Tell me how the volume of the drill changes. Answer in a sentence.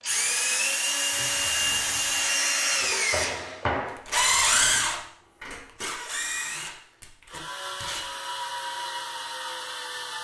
The loudness of the drill goes down.